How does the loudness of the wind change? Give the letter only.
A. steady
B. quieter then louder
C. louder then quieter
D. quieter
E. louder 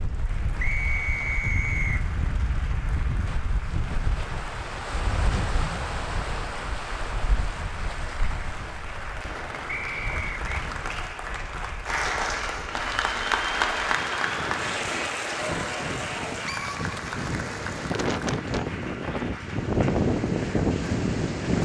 B.